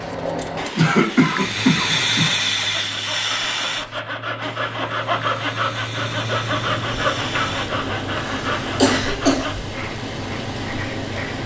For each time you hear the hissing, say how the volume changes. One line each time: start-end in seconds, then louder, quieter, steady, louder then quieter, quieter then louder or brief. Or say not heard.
0.0-11.4 quieter.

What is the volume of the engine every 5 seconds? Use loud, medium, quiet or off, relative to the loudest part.
medium, loud, loud.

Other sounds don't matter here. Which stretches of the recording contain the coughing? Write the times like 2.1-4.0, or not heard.
0.8-2.4, 8.8-9.5.